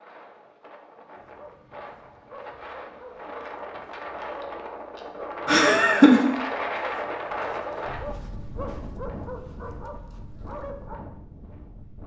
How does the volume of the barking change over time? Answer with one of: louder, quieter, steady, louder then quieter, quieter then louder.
louder.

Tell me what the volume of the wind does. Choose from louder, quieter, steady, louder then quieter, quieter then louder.
louder then quieter.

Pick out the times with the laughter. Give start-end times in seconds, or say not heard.
5.5-6.3.